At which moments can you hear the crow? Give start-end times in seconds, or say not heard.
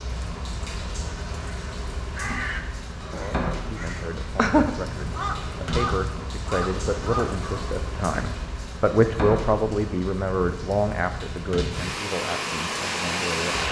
1.4-7.7.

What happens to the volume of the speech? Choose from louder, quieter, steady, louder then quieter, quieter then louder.
louder then quieter.